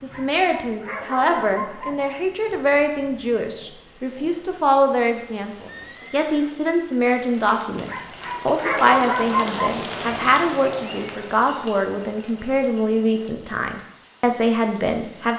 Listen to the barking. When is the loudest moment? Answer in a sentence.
The volume of the barking peaks at 9 seconds.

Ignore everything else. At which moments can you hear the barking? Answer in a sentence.
The barking can be heard from 0.1 to 2.0 s and from 7.8 to 9.8 s.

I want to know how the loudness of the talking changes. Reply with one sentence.
The volume of the talking stays about the same.